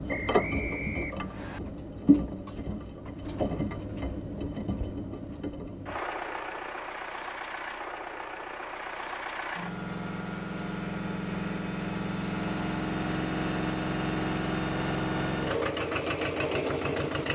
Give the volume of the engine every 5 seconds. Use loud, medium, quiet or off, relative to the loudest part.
loud, medium, loud, loud.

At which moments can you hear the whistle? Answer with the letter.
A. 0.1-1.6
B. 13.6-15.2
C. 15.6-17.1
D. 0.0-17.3
A.